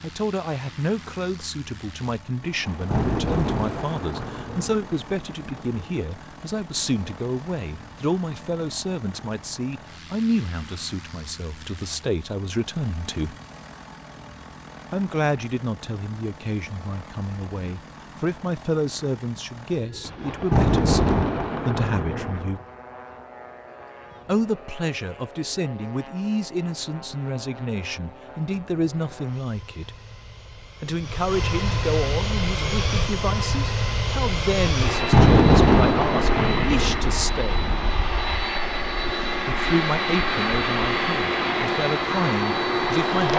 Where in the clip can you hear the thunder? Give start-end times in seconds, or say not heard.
2.4-6.0, 20.1-22.6, 34.7-38.0.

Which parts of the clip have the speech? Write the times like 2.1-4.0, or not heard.
0.0-13.3, 14.9-22.6, 24.2-29.9, 30.8-37.7, 39.5-43.3.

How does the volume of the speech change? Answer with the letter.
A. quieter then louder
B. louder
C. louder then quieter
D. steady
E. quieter
D.